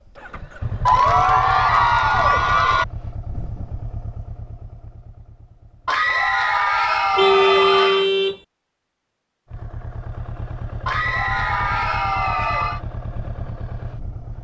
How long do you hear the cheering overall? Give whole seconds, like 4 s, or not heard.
6 s.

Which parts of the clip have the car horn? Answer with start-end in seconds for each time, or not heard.
7.2-8.4.